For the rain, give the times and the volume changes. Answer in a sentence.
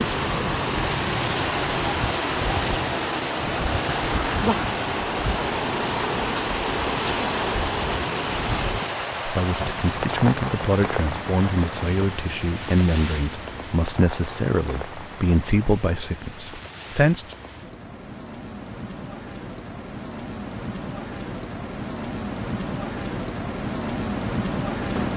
The rain can be heard from 0.0 to 25.1 s, getting quieter then louder.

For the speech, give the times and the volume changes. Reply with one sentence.
You can hear the speech from 9.2 to 17.4 s, at a steady volume.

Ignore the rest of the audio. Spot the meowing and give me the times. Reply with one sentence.
You can't hear the meowing here.